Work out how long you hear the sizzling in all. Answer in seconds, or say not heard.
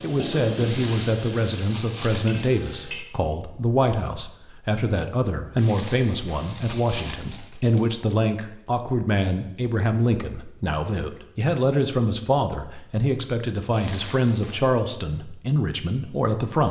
3 s.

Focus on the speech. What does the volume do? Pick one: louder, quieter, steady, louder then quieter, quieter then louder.
steady.